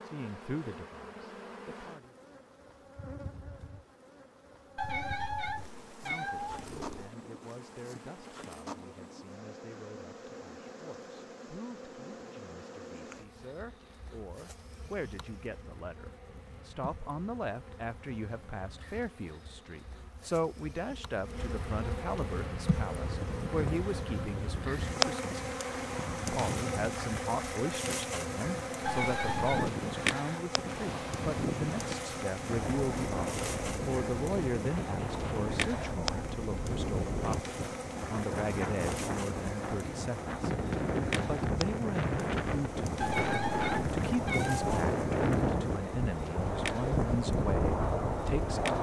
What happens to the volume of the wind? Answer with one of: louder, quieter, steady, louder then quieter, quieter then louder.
louder.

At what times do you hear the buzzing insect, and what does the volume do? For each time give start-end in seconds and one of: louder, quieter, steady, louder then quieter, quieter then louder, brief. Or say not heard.
0.0-48.7 louder then quieter.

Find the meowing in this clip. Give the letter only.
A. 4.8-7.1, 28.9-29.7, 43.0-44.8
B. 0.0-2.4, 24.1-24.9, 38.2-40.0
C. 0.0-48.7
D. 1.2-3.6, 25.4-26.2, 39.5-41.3
A.